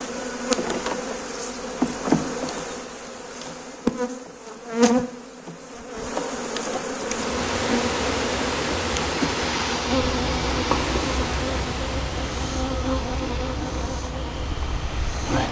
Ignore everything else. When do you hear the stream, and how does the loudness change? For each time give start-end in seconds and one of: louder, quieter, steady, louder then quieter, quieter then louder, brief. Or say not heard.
7.0-15.4 quieter.